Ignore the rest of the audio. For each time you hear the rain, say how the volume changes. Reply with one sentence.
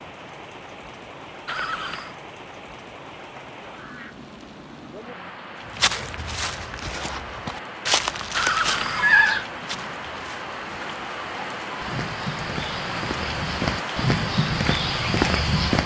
The rain can be heard from 0.0 to 15.8 s, getting louder.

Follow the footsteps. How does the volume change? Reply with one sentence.
The loudness of the footsteps goes down, then up.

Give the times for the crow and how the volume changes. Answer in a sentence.
The crow can't be heard in this clip.